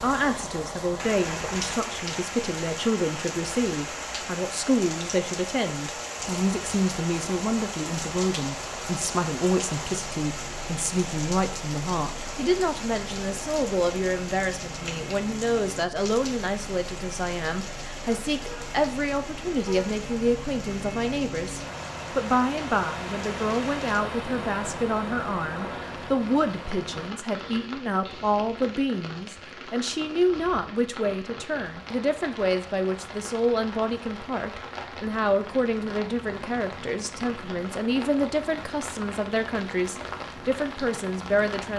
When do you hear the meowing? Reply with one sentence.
You can't hear the meowing here.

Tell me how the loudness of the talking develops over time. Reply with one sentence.
The loudness of the talking stays about the same.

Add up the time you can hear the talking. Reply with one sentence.
The talking can be heard for 42 seconds in total.